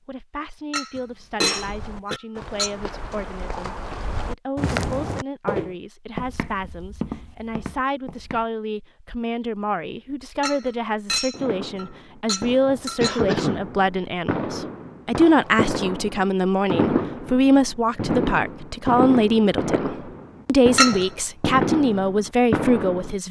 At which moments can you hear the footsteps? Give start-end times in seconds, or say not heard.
1.6-8.4.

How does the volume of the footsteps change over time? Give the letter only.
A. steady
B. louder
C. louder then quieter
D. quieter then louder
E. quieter
C.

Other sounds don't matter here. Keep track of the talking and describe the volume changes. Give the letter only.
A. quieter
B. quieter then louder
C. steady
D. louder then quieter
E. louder
E.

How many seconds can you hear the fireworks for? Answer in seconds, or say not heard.
12 s.